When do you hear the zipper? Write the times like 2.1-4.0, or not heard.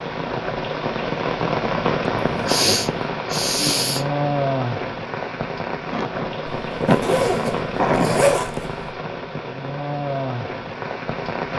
2.2-2.9, 6.5-8.9.